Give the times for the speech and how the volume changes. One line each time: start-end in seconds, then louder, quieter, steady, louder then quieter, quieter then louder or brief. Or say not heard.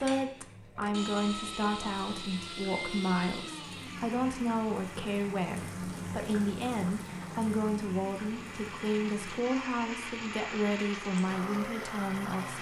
0.0-12.5 steady.